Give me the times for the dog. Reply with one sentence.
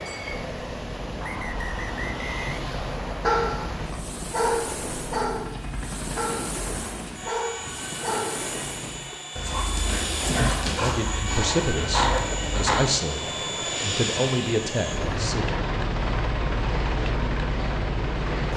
The dog can be heard from 2.5 to 13.0 s.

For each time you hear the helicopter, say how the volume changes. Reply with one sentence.
You can hear the helicopter from 0.0 to 18.5 s, getting louder.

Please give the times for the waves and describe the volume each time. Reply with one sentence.
You can hear the waves from 0.0 to 18.5 s, at a steady volume.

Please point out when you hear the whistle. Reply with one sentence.
You can hear the whistle from 1.2 to 3.2 s.